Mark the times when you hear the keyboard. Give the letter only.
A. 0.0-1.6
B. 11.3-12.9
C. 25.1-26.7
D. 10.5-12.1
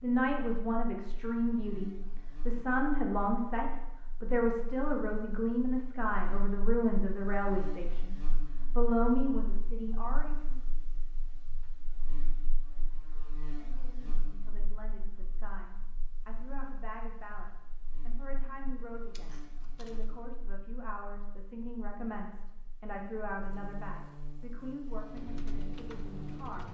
C.